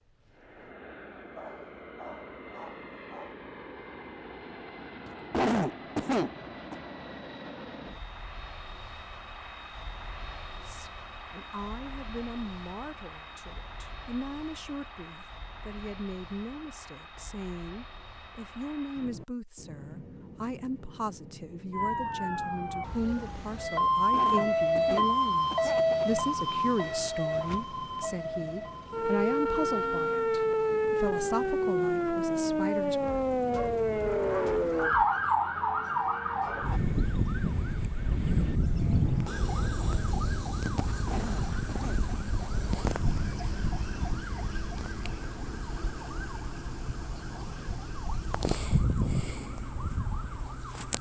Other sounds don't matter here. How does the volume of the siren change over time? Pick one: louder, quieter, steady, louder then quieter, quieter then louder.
quieter.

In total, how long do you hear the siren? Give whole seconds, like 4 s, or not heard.
29 s.